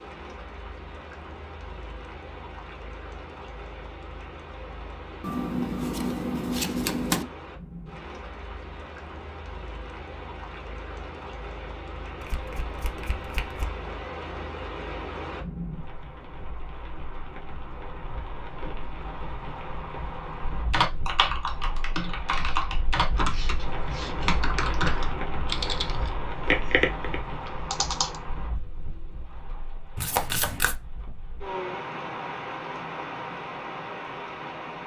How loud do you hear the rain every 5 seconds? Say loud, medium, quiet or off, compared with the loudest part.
medium, medium, loud, loud, loud, loud, loud.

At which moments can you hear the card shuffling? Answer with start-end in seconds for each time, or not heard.
5.2-7.2, 12.2-13.7, 29.9-30.8.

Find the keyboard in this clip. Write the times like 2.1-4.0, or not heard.
20.7-28.2.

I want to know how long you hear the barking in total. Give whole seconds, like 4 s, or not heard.
not heard.